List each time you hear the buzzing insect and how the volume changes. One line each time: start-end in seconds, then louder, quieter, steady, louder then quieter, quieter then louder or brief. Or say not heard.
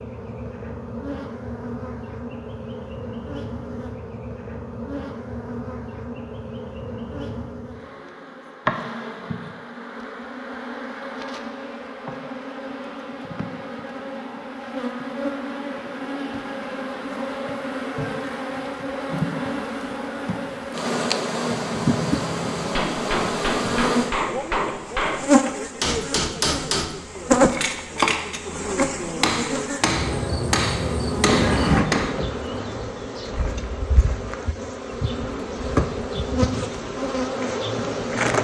0.0-38.3 louder.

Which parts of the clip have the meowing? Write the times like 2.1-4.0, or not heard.
31.2-31.9.